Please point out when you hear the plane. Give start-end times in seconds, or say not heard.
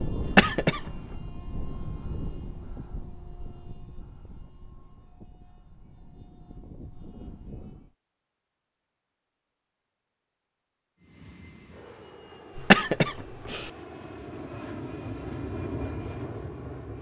0.0-7.9, 11.0-16.9.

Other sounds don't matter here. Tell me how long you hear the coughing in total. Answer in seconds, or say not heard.
2 s.